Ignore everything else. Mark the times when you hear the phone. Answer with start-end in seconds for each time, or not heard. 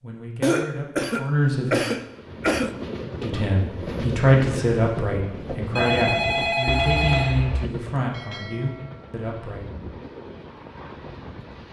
5.8-7.3.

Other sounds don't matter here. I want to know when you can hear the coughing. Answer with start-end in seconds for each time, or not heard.
0.4-2.8, 6.7-7.7.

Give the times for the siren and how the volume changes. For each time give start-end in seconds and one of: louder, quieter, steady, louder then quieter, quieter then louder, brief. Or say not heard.
not heard.